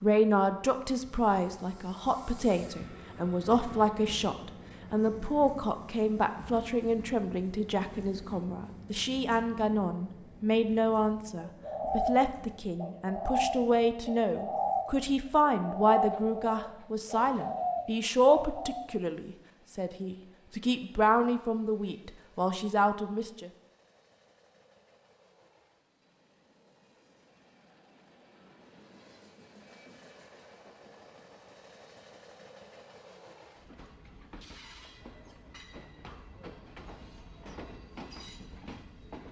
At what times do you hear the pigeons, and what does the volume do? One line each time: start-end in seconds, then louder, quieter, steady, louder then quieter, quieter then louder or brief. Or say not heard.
11.3-18.9 steady.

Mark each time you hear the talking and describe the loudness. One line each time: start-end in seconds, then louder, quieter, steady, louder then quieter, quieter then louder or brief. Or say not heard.
0.0-23.5 steady.